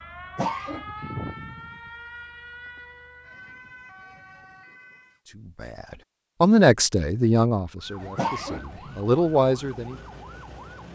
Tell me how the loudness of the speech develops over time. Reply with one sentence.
The loudness of the speech goes down, then up.